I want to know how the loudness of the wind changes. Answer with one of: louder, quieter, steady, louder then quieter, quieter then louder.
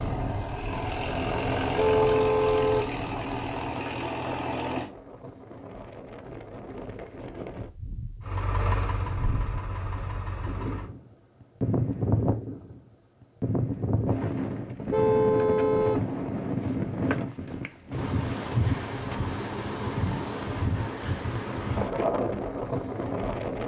louder.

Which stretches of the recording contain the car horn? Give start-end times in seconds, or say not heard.
1.8-2.9, 14.9-16.1.